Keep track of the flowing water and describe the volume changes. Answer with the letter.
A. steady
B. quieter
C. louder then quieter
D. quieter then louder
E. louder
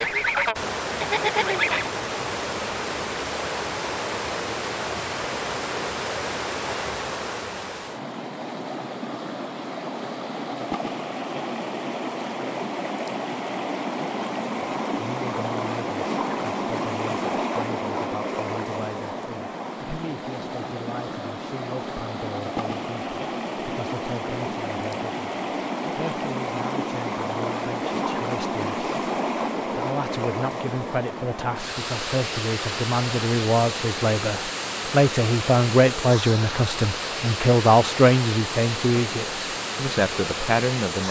A.